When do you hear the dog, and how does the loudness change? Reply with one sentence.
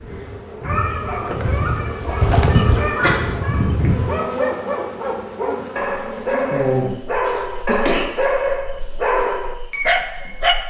You can hear the dog from 0.6 to 10.6 s, getting louder.